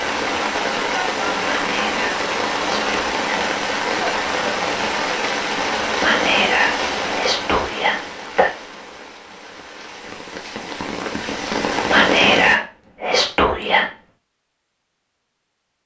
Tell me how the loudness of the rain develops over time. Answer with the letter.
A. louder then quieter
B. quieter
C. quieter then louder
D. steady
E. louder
C.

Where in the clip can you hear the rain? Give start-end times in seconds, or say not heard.
0.0-12.6.